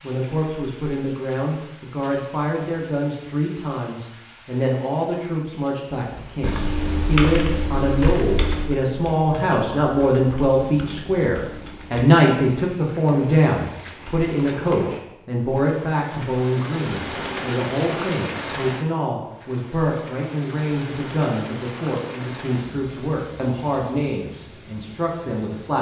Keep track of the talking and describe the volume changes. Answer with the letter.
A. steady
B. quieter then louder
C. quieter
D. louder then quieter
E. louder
D.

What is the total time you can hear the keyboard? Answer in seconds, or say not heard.
6 s.